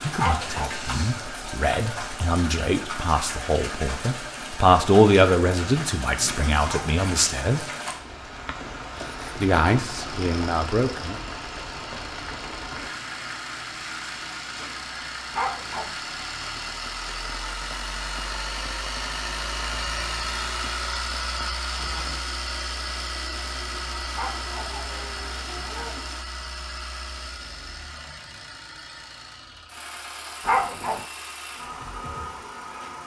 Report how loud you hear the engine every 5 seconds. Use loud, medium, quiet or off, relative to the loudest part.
medium, medium, medium, loud, loud, medium, medium.